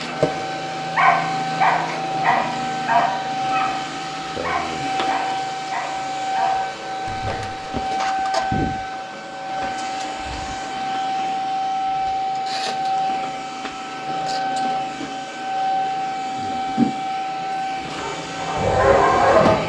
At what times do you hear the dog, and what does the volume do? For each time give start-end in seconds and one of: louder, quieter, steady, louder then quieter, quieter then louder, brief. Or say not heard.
0.9-7.7 quieter
17.8-19.6 brief.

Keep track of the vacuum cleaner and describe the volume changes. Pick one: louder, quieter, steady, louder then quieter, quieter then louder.
steady.